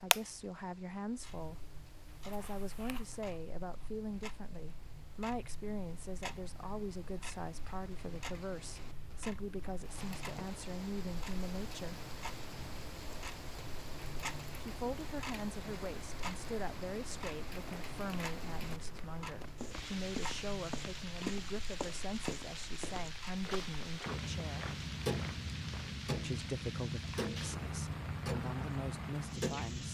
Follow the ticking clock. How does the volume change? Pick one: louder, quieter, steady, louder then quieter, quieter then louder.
louder.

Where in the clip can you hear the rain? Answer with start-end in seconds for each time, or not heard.
0.0-29.8.